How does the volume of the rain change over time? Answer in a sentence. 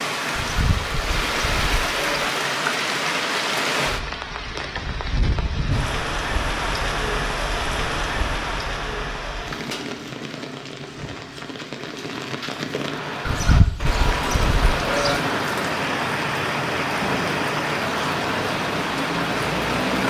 The loudness of the rain goes down, then up.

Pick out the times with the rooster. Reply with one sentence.
You can't hear the rooster here.